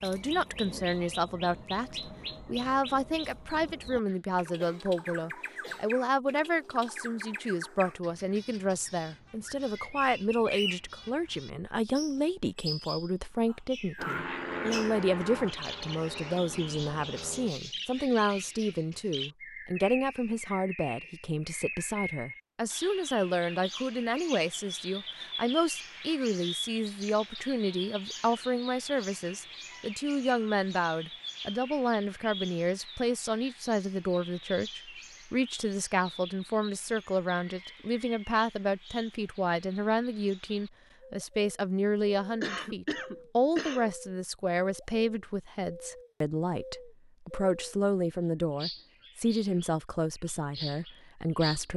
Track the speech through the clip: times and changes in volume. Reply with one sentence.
The speech can be heard from 0.0 to 51.7 s, at a steady volume.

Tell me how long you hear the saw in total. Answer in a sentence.
The saw can't be heard in this clip.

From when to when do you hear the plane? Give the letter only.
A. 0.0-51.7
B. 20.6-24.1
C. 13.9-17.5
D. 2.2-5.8
C.